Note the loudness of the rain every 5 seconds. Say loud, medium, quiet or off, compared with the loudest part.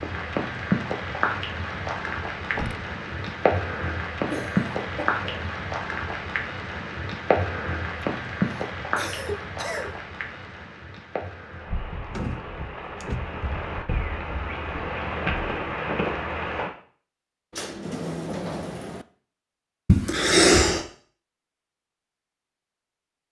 loud, loud, medium, loud, off.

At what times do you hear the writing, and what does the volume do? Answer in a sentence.
You can't hear the writing here.